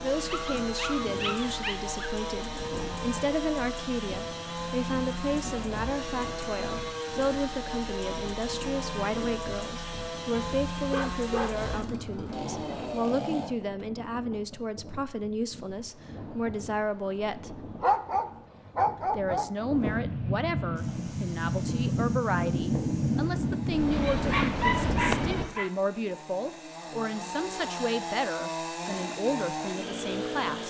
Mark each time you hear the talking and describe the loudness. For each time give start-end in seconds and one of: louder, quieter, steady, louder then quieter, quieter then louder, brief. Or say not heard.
0.0-17.6 steady
19.1-30.6 steady.